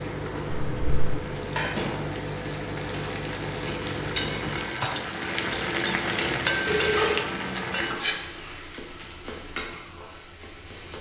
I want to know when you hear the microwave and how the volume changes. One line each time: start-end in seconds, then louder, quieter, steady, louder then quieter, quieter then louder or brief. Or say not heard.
0.0-4.8 steady.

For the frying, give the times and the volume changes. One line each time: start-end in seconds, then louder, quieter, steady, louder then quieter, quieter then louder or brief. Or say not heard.
0.0-10.9 louder then quieter.